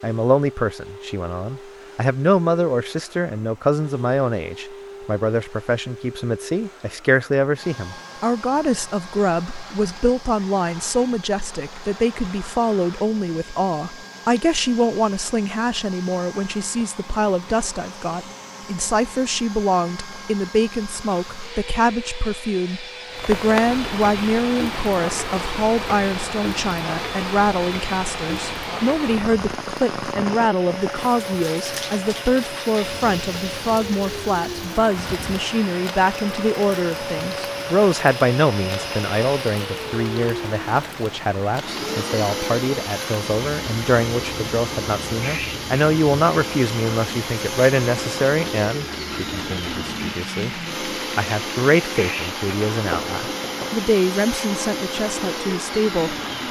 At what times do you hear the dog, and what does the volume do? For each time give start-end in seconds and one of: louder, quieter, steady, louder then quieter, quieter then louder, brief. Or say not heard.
not heard.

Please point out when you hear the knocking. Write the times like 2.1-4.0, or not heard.
52.9-53.9.